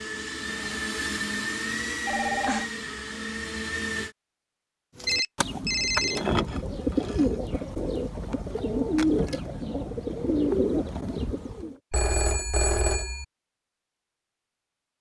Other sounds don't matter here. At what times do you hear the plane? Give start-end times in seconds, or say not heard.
0.0-4.2.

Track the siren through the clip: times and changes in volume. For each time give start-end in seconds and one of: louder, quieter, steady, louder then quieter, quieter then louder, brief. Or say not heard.
not heard.